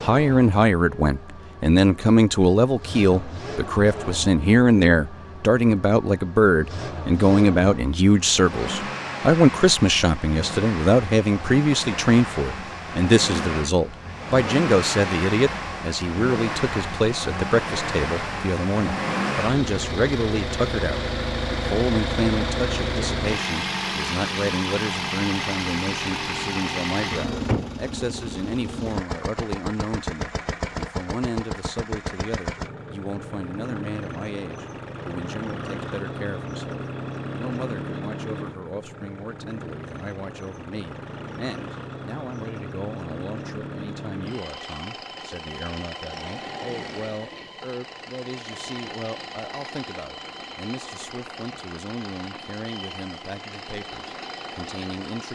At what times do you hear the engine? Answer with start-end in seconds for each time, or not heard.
0.0-55.3.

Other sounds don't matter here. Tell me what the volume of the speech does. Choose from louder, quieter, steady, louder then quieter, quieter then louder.
quieter.